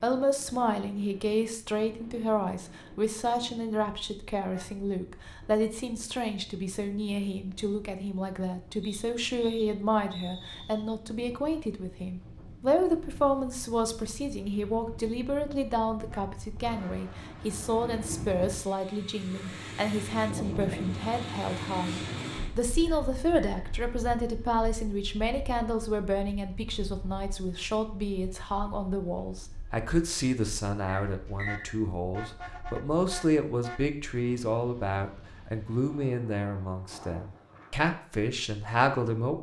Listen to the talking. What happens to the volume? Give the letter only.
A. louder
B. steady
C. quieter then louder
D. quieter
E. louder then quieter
B.